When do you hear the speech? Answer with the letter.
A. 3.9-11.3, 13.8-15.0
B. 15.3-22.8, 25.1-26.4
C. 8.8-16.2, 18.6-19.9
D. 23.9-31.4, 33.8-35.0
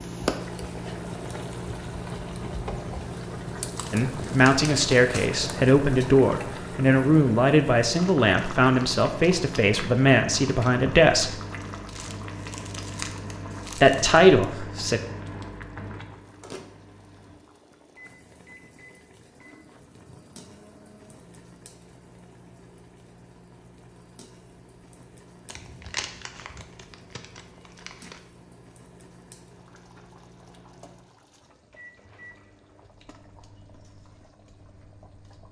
A.